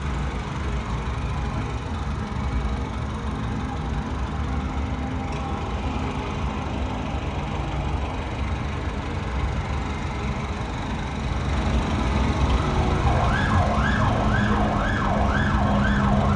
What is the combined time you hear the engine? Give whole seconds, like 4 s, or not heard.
16 s.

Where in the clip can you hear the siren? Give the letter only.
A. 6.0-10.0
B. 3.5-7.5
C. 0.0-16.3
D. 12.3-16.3
D.